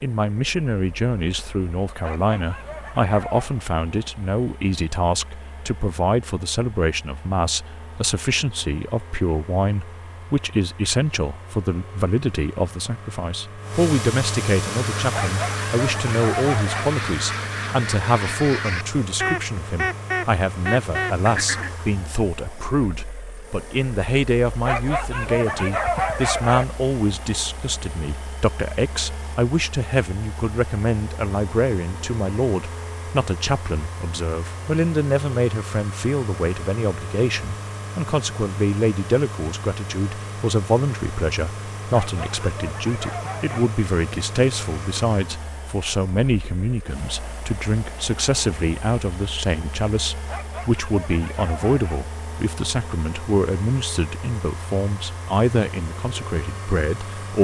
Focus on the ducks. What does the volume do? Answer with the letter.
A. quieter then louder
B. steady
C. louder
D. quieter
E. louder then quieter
C.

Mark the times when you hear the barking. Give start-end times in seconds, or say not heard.
2.0-3.5, 15.1-16.9, 24.6-26.6, 41.9-43.8, 50.2-52.0.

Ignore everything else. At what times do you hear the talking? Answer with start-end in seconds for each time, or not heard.
0.0-57.4.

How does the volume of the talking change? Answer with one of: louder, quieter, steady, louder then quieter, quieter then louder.
steady.